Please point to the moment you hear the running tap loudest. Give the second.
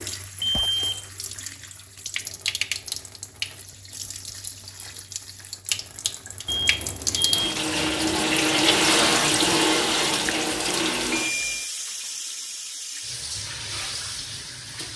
9 s.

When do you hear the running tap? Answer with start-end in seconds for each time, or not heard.
0.0-14.9.